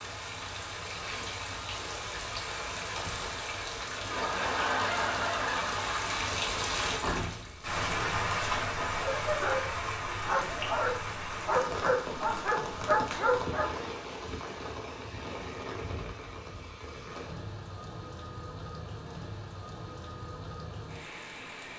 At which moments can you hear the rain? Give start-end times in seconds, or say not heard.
0.0-21.7.